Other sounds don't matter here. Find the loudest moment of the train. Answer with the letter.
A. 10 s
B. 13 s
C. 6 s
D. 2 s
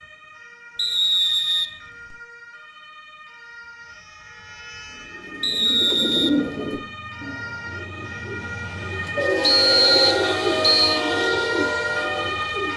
A.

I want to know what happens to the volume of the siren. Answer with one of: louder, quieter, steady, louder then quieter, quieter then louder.
louder.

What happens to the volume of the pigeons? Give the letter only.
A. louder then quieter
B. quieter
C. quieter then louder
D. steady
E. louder
C.